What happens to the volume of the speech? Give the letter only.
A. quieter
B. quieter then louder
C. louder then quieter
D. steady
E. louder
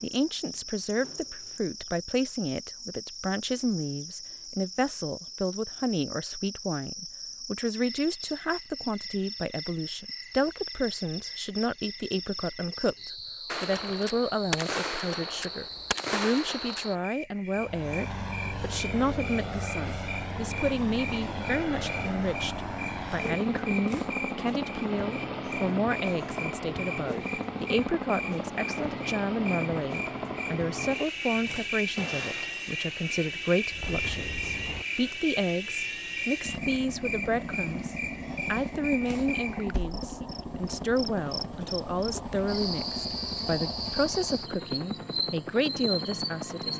D.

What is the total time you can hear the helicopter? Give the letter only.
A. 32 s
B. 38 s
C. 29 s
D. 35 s
C.